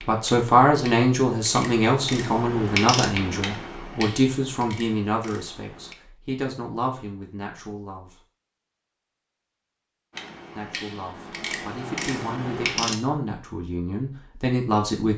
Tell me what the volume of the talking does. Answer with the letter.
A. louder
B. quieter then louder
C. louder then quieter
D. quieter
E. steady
B.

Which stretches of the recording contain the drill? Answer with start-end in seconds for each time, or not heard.
not heard.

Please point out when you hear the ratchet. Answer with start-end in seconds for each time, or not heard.
0.0-6.0, 10.1-12.9.